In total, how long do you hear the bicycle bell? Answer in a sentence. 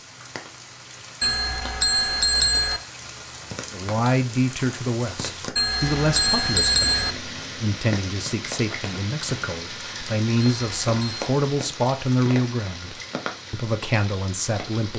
The bicycle bell can be heard for 4 seconds in total.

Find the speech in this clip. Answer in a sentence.
The speech can be heard from 3.7 to 14.9 s.